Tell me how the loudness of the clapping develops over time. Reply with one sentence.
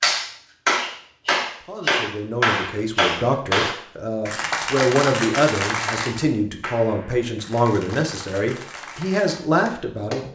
The loudness of the clapping goes down.